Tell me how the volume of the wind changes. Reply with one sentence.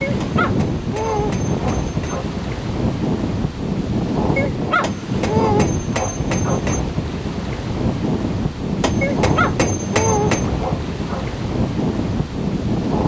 The volume of the wind stays about the same.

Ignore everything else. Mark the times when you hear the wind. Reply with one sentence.
You can hear the wind from 0.0 to 13.0 s.